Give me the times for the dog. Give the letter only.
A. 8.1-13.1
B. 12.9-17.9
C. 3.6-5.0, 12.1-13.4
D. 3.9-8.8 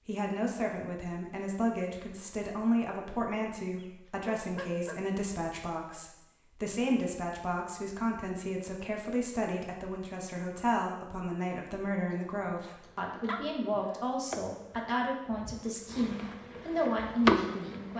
C.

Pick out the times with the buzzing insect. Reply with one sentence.
You can hear the buzzing insect from 12.9 to 17.9 s.